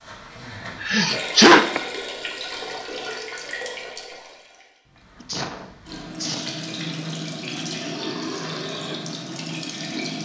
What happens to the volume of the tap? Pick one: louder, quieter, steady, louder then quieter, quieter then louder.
quieter then louder.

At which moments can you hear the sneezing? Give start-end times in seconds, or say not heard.
0.8-1.8, 5.2-6.6.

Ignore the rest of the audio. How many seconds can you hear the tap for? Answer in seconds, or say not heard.
10 s.